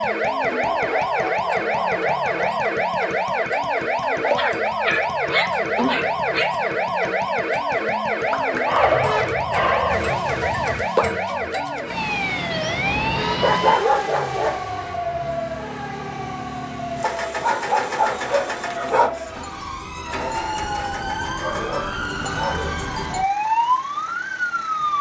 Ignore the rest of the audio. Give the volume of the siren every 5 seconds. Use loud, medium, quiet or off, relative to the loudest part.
loud, loud, loud, medium, loud.